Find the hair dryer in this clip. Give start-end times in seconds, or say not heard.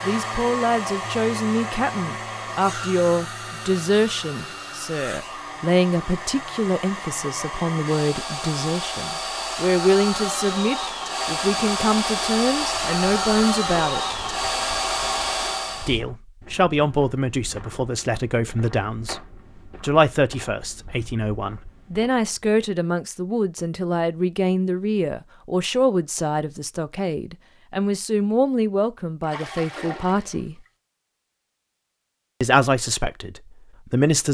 0.0-16.0.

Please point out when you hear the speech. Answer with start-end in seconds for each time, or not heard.
0.0-14.2, 15.8-19.2, 19.8-30.6, 32.4-34.2.